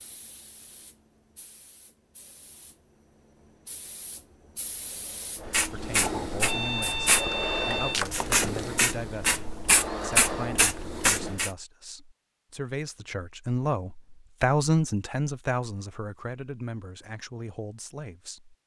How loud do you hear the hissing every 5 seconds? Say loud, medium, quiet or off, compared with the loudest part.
quiet, loud, loud, off.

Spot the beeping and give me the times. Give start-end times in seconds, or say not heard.
6.4-8.0.